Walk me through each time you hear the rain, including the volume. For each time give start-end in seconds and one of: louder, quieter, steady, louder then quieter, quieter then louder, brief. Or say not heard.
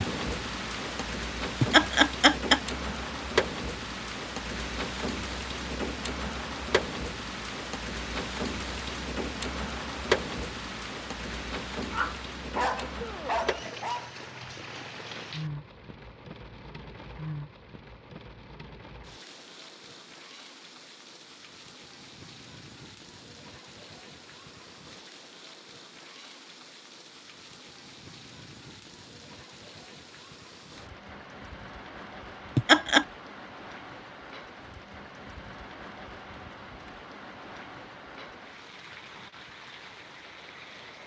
0.0-41.0 quieter.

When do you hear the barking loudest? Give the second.
13 s.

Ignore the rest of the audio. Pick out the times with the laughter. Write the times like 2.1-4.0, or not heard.
1.6-2.6, 32.5-33.0.